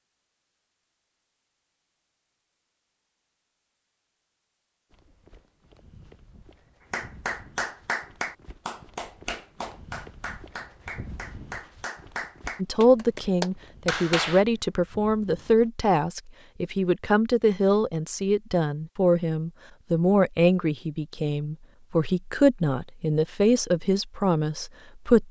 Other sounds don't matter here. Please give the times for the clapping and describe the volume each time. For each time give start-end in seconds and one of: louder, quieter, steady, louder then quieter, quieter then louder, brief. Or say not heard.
6.9-14.4 quieter then louder.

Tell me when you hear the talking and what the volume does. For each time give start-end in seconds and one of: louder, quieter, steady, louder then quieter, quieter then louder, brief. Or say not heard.
12.6-25.2 steady.